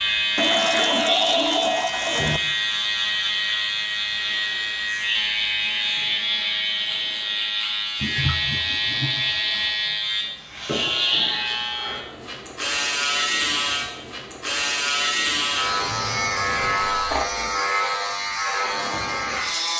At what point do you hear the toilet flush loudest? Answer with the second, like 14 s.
1 s.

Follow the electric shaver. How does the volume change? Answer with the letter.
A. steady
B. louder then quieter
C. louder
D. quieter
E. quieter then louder
A.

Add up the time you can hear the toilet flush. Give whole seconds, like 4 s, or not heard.
4 s.